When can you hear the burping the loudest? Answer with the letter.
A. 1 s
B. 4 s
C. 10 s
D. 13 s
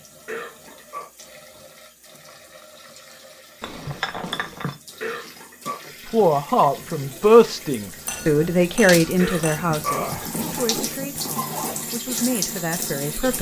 C.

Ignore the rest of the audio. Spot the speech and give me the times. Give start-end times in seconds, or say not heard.
6.0-13.3.